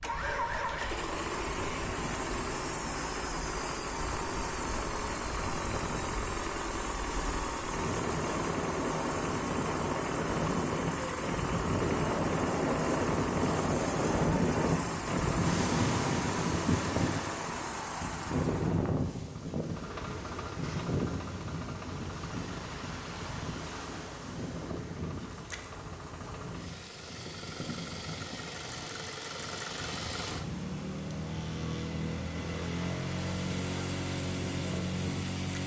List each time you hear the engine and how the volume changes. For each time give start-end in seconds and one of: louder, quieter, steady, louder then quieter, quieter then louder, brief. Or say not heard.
0.0-35.6 quieter then louder.